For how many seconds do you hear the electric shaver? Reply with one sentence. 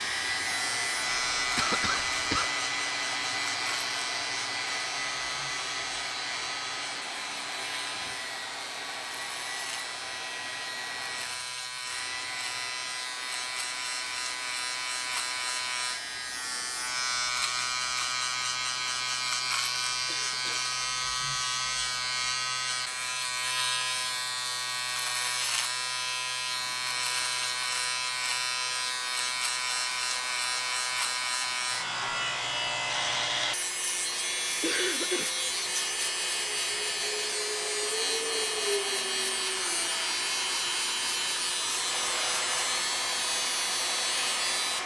You can hear the electric shaver for 45 seconds altogether.